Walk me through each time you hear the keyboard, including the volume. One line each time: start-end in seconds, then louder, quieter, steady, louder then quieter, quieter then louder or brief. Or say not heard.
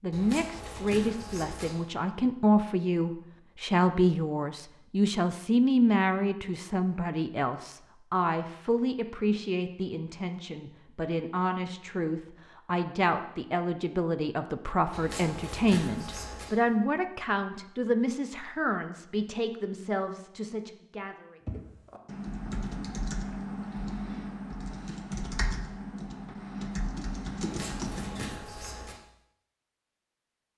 21.4-28.4 steady.